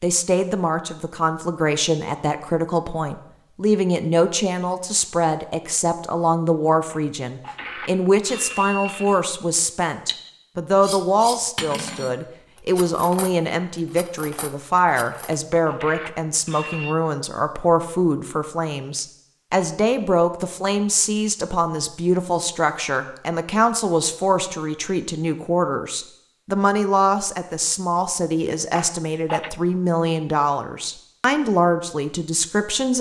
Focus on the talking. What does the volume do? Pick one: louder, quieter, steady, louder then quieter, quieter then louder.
steady.